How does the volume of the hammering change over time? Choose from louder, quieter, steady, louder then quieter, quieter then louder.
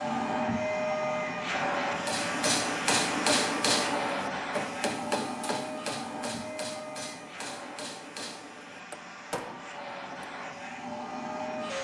quieter.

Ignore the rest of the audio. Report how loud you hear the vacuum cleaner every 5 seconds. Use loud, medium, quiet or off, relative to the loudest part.
loud, medium, medium.